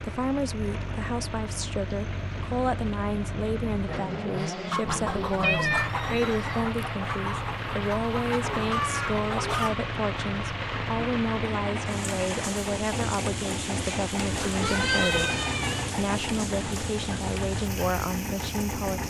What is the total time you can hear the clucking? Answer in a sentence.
The clucking can be heard for 5 seconds in total.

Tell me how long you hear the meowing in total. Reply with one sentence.
The meowing can be heard for 3 seconds in total.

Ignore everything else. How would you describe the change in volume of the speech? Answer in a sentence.
The volume of the speech stays about the same.